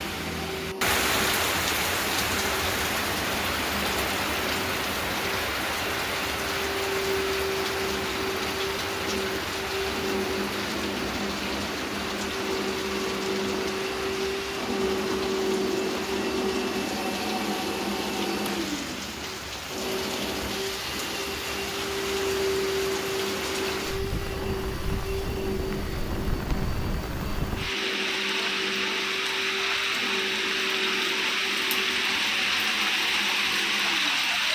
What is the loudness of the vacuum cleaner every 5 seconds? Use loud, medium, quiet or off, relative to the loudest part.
medium, loud, loud, loud, loud, medium, medium.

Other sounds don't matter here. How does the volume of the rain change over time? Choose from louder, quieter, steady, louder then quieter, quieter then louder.
quieter then louder.